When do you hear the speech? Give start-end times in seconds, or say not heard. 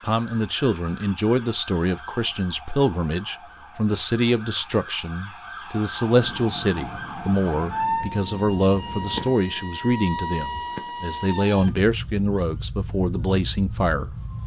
0.0-14.2.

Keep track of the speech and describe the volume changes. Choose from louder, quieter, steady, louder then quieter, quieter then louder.
steady.